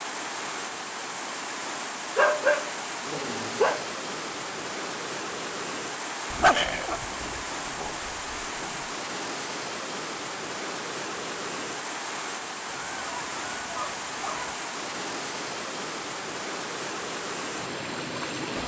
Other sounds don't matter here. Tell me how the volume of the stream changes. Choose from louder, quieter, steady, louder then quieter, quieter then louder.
steady.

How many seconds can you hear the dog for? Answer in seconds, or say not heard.
6 s.